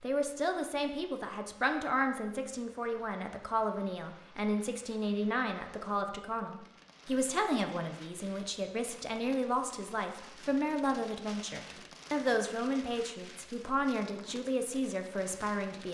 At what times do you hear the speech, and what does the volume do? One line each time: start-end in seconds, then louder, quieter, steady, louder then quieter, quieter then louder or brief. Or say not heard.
0.0-15.8 steady.